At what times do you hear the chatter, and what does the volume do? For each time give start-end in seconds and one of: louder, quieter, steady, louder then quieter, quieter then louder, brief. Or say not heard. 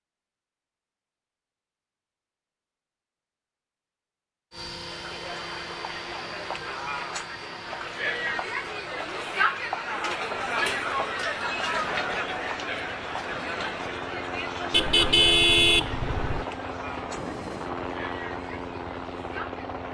4.8-19.8 louder then quieter.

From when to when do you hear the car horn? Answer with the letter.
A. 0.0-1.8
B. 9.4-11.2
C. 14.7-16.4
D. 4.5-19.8
C.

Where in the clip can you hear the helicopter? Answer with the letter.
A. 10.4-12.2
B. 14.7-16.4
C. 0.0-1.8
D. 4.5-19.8
D.